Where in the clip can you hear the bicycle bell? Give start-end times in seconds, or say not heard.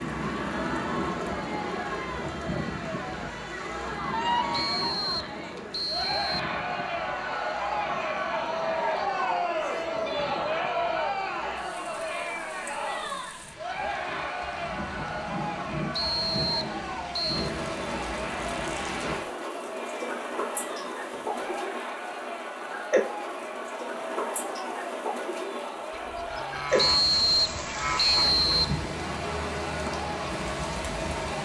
not heard.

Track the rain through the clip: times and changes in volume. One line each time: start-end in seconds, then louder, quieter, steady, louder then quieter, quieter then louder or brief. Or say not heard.
0.0-31.4 quieter then louder.